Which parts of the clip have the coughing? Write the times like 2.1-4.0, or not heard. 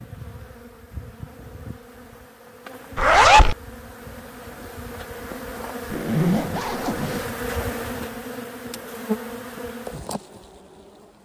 not heard.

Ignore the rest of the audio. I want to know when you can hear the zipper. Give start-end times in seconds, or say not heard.
3.0-3.5, 5.9-7.2.